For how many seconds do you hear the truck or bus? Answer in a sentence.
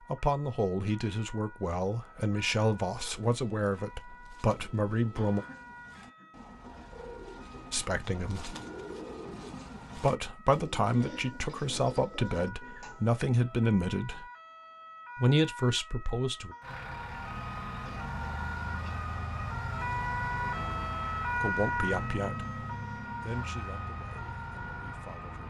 You can hear the truck or bus for 9 seconds altogether.